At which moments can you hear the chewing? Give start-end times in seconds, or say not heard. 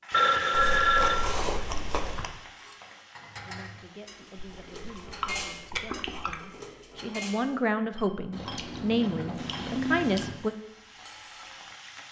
0.5-2.4, 4.3-6.4, 8.3-10.3.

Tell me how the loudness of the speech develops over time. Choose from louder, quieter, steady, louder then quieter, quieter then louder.
louder.